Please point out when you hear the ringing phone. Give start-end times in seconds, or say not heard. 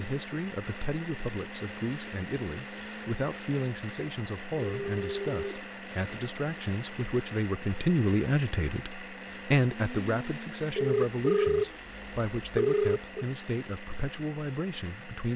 4.5-5.7, 10.8-13.2.